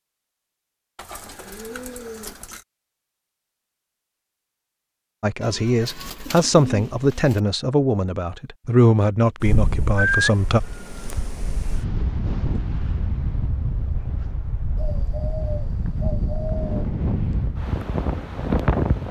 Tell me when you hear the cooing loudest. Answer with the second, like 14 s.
10 s.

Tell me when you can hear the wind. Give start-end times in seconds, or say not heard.
9.4-19.0.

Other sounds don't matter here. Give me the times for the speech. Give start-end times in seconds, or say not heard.
5.2-10.6.